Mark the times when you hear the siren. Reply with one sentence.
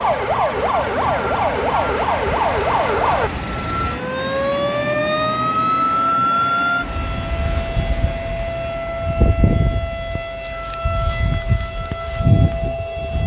You can hear the siren from 0.0 to 13.2 s.